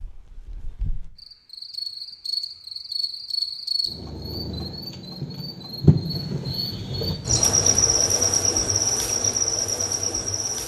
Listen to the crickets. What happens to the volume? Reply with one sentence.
The volume of the crickets goes up.